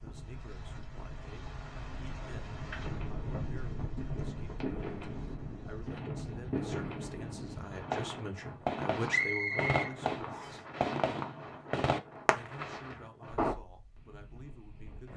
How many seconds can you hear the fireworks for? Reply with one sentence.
The fireworks can be heard for 11 seconds in total.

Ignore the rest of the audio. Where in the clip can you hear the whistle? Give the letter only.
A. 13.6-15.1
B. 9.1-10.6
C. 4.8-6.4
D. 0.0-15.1
B.